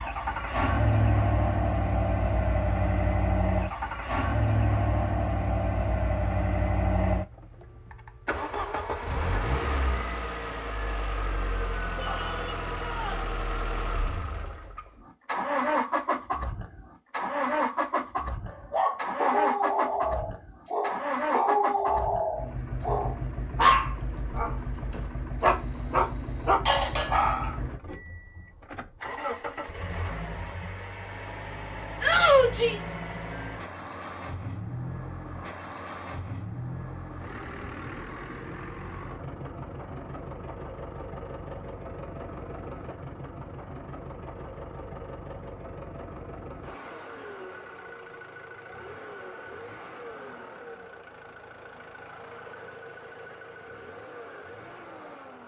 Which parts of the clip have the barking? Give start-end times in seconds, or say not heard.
18.5-27.6.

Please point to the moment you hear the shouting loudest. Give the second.
32 s.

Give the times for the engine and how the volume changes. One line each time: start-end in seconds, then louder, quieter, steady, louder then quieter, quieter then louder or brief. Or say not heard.
0.0-55.4 quieter.